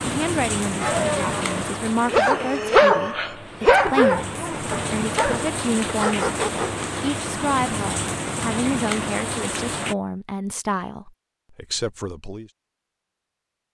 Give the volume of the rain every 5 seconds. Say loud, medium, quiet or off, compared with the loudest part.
loud, loud, off.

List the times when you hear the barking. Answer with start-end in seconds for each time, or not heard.
0.8-6.8.